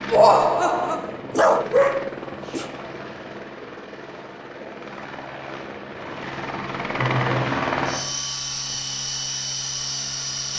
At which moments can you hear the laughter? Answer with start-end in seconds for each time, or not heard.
0.1-1.0, 6.9-7.5.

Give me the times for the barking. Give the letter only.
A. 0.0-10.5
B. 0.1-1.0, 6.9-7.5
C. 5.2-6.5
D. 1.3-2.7
D.